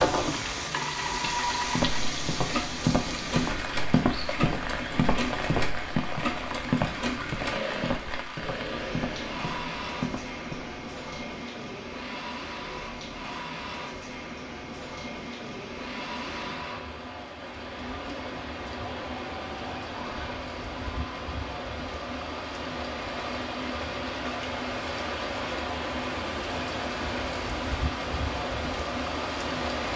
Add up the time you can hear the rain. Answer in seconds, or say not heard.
30 s.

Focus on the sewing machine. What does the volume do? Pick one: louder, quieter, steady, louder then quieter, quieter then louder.
quieter.